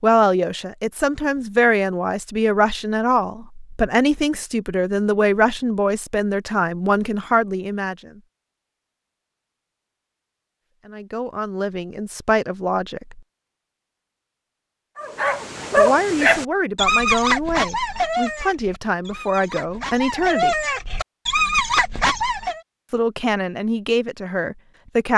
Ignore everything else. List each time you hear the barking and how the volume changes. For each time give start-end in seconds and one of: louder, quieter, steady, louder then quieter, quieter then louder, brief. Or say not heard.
14.9-22.6 quieter then louder.